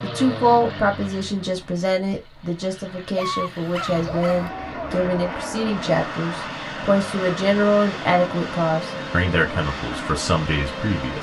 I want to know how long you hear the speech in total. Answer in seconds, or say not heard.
11 s.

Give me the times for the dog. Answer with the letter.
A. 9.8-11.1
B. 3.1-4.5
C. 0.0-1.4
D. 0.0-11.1
B.